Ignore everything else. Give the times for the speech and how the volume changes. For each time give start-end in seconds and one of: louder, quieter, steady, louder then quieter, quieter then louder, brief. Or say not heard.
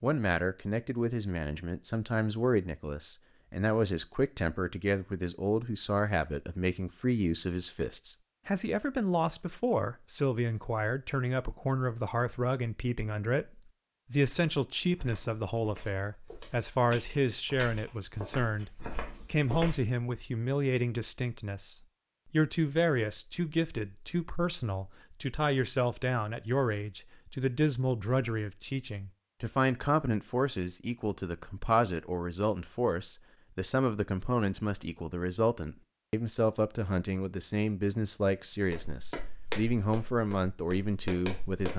0.0-41.7 steady.